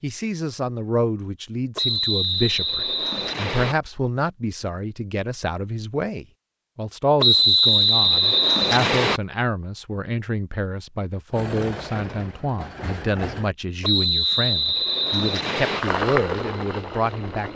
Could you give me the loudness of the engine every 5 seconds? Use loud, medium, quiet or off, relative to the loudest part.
off, off, medium, loud.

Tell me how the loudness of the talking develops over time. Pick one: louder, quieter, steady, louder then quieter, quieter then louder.
steady.